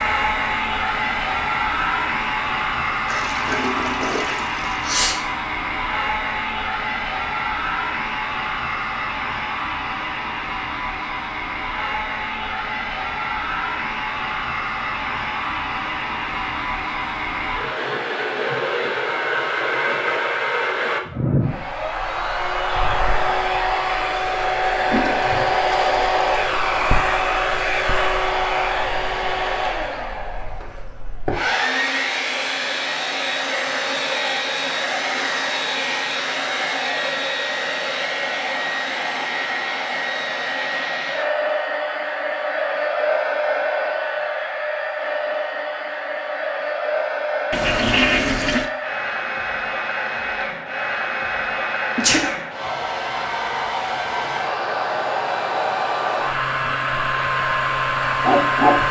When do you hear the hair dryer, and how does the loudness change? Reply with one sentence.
The hair dryer can be heard from 0.0 to 58.8 s, at a steady volume.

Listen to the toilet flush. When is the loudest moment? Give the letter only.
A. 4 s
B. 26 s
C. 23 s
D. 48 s
D.